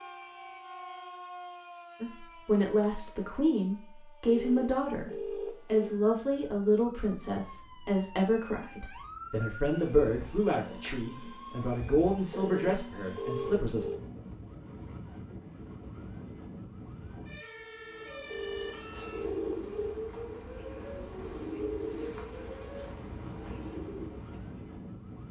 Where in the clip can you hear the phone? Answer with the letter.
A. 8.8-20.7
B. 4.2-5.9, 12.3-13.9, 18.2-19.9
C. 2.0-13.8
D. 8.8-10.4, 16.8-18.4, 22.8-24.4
B.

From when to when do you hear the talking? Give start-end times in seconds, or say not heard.
2.0-13.8.